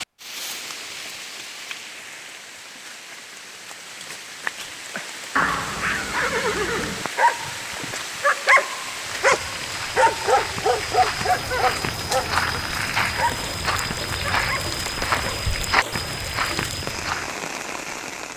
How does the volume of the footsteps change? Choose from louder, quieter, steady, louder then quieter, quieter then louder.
louder.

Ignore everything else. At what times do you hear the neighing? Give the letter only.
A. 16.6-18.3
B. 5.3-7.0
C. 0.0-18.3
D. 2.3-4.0
B.